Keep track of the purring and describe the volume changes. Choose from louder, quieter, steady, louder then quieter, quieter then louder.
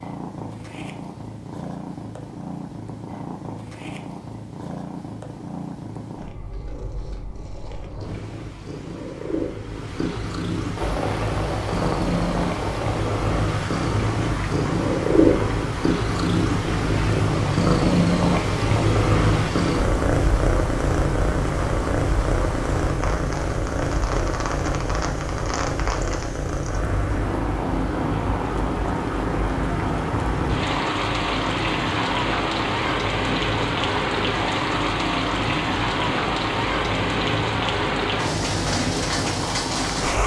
louder then quieter.